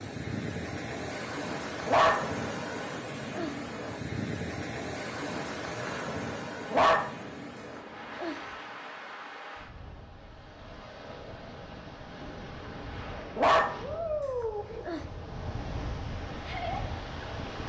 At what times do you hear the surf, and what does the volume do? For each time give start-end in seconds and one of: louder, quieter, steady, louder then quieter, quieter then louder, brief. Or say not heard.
0.0-17.6 quieter then louder.